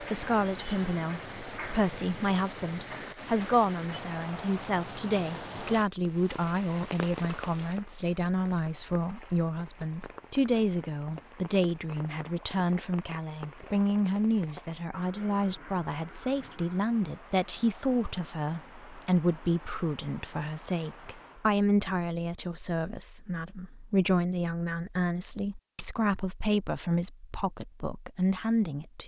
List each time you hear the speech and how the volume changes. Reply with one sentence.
The speech can be heard from 0.0 to 29.0 s, at a steady volume.